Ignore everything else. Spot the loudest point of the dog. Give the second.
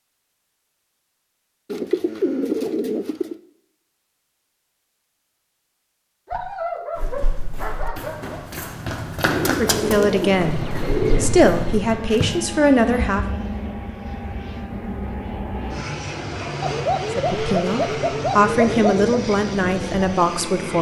7 s.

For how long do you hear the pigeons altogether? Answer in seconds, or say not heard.
6 s.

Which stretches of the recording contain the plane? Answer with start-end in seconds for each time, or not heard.
10.3-20.7.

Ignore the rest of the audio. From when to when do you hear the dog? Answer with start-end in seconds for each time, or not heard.
6.2-8.4.